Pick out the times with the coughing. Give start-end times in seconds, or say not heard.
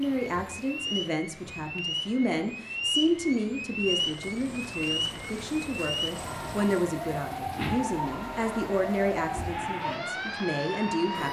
not heard.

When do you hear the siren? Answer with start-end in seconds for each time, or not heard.
0.1-11.2.